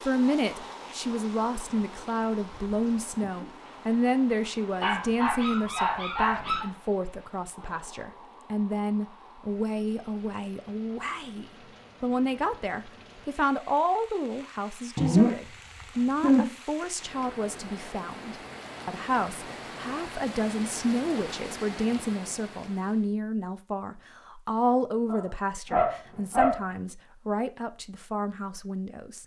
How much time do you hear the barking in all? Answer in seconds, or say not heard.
5 s.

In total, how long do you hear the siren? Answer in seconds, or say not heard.
not heard.